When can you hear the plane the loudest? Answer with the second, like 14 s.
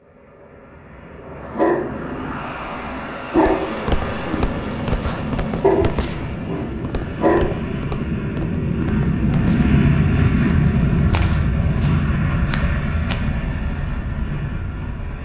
10 s.